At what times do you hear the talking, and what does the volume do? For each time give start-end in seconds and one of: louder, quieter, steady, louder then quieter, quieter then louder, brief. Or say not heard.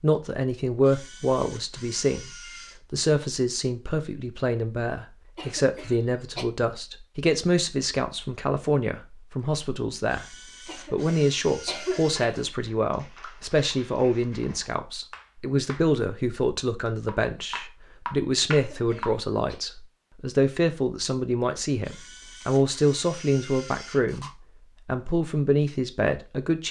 0.0-26.6 steady.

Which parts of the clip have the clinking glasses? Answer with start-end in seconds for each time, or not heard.
not heard.